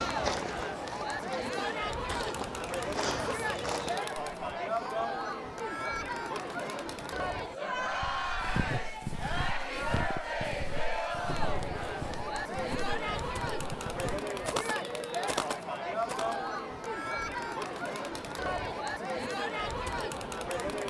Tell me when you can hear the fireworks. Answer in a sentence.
The fireworks can't be heard in this clip.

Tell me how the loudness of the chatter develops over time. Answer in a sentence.
The volume of the chatter stays about the same.